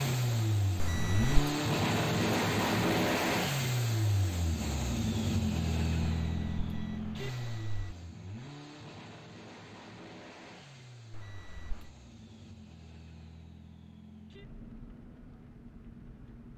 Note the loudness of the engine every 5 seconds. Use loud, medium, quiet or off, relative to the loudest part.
loud, medium, quiet, quiet.